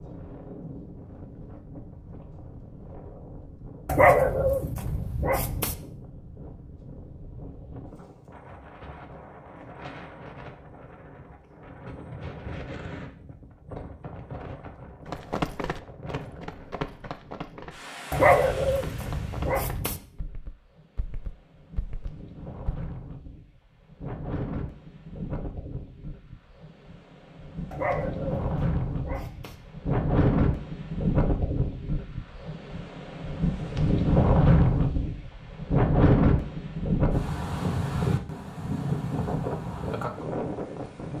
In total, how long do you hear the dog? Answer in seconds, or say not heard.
6 s.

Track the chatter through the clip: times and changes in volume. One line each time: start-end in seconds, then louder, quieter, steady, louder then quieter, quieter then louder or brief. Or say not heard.
not heard.